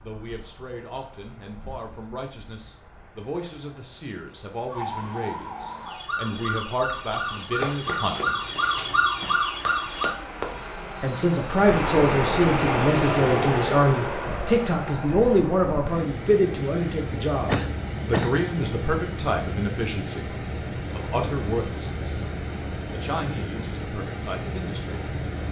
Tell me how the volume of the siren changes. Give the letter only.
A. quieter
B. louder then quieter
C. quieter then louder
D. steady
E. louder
E.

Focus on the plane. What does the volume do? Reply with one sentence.
The loudness of the plane goes up, then down.